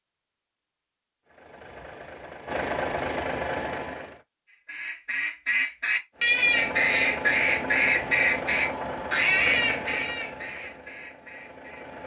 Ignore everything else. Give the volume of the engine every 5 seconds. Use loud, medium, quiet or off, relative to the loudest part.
loud, loud, medium.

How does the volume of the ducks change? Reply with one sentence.
The volume of the ducks goes down.